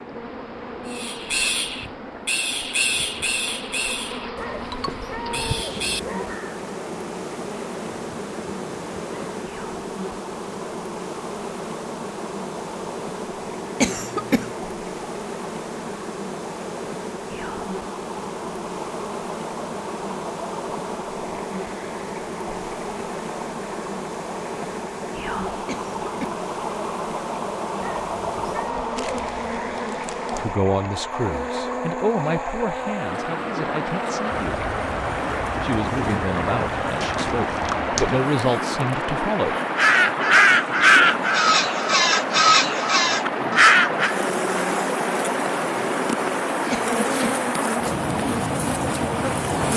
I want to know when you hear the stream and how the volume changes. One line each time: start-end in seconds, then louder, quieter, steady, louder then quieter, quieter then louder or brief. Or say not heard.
0.0-49.7 louder.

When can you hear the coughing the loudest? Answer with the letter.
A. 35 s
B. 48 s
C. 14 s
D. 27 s
C.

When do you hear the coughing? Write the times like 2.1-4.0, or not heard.
13.8-14.5, 25.6-26.4, 46.7-47.4.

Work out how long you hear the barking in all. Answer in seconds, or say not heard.
4 s.